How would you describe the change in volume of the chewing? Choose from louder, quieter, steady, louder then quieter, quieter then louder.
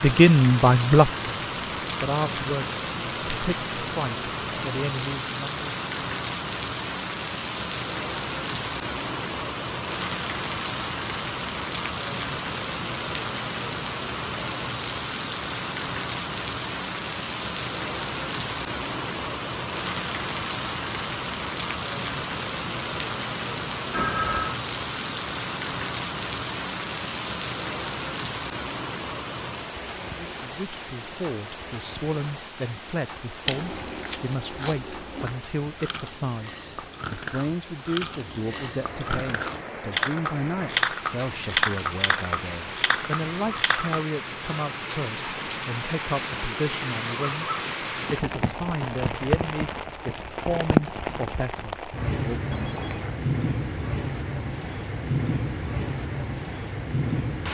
louder then quieter.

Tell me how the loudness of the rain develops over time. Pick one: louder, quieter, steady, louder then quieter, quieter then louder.
quieter then louder.